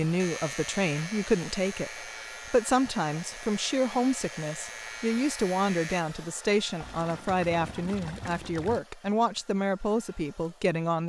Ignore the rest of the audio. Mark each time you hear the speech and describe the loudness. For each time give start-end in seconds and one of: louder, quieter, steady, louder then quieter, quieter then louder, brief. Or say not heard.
0.0-11.0 steady.